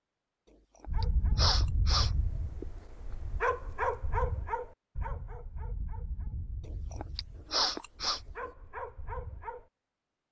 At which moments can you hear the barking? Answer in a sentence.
The barking can be heard from 0.8 to 9.7 s.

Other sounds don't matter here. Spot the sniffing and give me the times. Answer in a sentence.
You can hear the sniffing from 1.4 to 2.1 s and from 7.5 to 8.2 s.